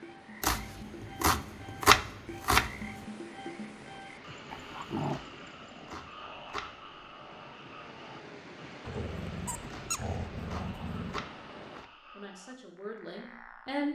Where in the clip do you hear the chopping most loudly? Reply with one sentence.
The loudest moment of the chopping is at 2 seconds.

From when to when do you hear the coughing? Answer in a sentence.
The coughing can't be heard in this clip.